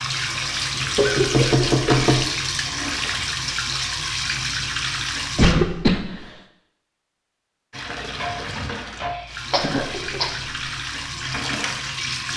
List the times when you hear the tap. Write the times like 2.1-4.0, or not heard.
0.0-5.5, 7.7-12.3.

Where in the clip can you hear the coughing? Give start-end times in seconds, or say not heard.
0.9-2.0, 5.3-6.2, 9.5-10.3.